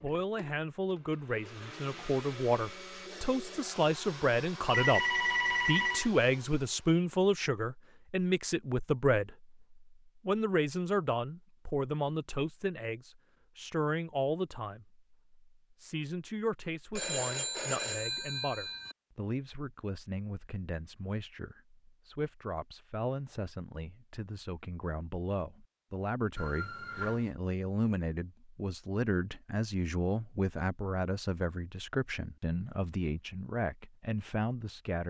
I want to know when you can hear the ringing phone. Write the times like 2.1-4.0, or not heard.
4.7-6.1, 16.9-18.9, 26.4-27.3.